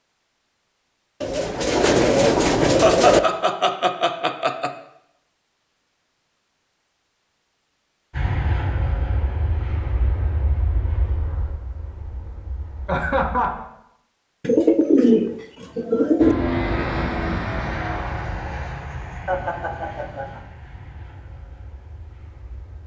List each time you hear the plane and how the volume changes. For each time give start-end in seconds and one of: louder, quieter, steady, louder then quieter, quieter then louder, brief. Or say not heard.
8.1-13.5 quieter
16.1-22.8 quieter.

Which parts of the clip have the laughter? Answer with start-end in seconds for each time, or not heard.
2.8-4.7, 12.8-13.7, 19.2-20.4.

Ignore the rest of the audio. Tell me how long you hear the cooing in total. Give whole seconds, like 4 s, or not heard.
4 s.